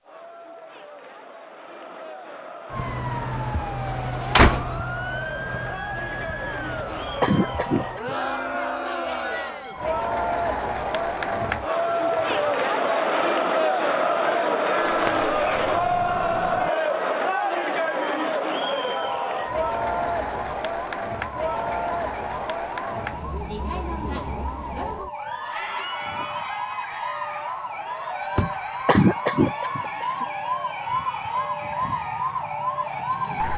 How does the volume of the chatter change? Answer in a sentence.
The volume of the chatter goes up, then down.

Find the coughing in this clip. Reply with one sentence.
You can hear the coughing from 7.2 to 8.3 s and from 28.9 to 30.2 s.